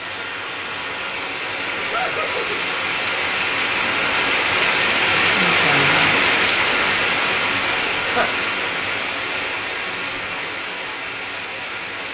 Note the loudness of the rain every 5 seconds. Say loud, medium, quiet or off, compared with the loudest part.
loud, loud, medium.